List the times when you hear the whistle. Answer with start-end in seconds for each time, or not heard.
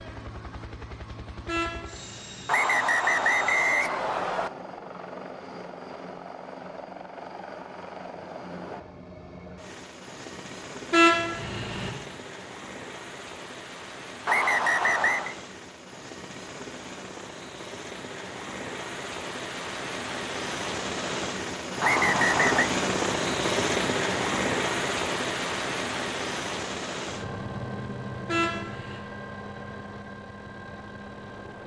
2.5-4.5, 14.2-15.3, 21.8-22.7.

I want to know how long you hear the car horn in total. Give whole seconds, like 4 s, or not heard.
3 s.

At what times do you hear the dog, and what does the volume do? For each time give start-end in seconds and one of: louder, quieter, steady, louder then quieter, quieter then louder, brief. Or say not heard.
not heard.